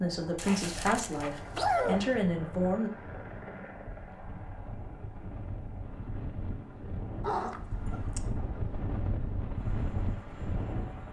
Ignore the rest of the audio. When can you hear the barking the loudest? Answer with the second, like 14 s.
2 s.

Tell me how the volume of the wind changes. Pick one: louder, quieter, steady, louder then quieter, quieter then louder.
louder.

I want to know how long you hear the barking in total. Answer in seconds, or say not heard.
3 s.